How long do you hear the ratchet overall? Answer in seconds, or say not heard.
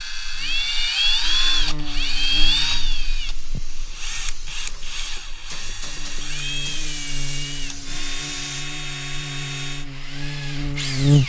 not heard.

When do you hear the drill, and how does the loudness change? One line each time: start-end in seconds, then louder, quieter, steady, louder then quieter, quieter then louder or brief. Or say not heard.
0.0-11.2 quieter.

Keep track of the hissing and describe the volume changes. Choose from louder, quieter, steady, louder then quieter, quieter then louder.
louder.